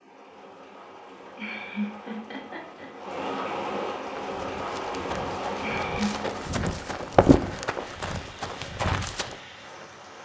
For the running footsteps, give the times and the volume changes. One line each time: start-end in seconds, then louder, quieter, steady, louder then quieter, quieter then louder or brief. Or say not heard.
4.0-9.3 louder then quieter.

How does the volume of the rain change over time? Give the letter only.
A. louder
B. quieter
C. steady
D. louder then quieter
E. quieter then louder
D.